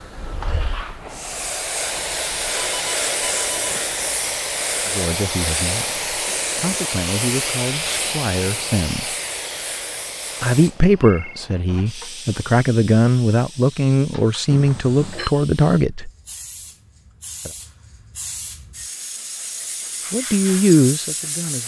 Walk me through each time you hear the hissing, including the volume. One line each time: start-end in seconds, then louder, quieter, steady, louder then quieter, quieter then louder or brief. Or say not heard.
0.0-21.6 quieter then louder.